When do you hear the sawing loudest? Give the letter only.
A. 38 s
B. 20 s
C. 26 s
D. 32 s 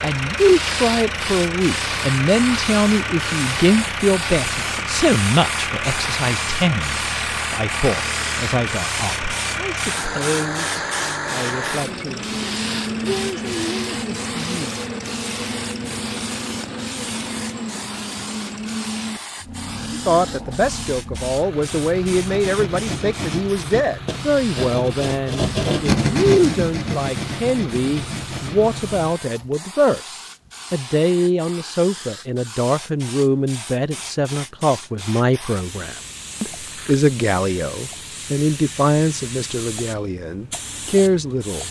C.